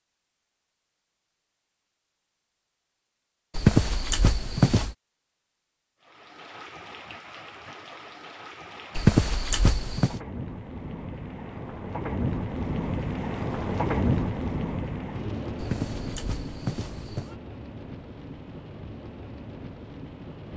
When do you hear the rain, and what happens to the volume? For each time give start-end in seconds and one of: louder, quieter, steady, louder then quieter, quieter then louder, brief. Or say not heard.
6.0-20.5 louder then quieter.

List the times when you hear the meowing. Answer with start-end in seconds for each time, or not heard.
3.5-5.0, 8.9-10.2, 15.6-17.4.